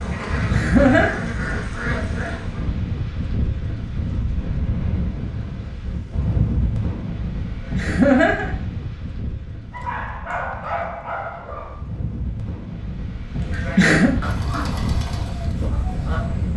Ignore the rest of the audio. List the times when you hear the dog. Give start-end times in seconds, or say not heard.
9.7-11.8.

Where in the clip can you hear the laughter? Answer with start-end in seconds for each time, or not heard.
0.5-1.1, 7.8-8.5, 13.4-14.1.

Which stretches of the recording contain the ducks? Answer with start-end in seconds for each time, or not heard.
0.0-2.6, 13.4-16.5.